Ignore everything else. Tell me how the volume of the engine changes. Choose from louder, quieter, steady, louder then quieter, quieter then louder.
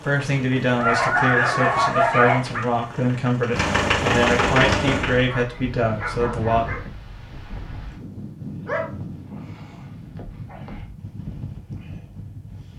louder.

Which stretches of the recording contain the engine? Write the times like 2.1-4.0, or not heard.
0.0-5.3.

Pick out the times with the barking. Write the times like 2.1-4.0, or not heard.
0.8-2.6, 5.2-6.9, 8.7-10.8.